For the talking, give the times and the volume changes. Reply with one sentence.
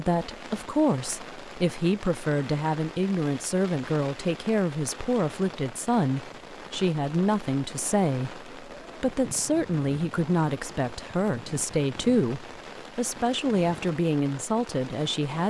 The talking can be heard from 0.0 to 15.4 s, at a steady volume.